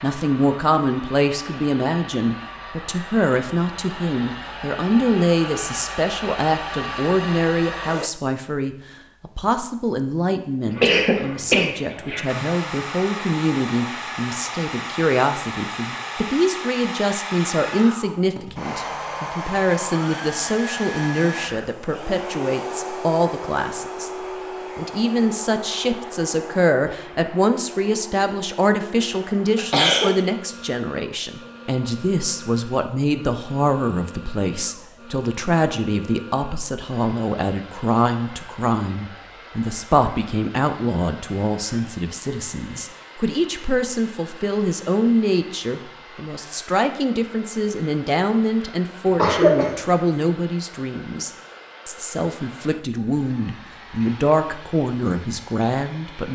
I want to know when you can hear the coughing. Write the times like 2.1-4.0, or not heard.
10.7-12.3, 29.6-30.1, 49.0-49.8.